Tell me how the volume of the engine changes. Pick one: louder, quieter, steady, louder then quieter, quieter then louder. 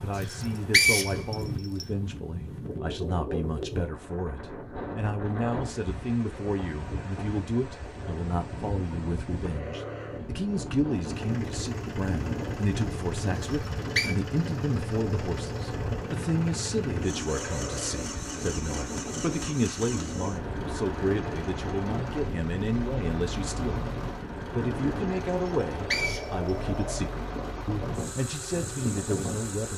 steady.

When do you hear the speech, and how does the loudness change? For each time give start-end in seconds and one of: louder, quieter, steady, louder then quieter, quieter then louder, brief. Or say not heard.
0.0-29.7 steady.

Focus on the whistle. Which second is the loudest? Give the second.
1 s.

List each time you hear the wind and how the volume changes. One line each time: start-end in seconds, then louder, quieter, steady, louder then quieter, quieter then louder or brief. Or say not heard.
0.0-29.6 steady.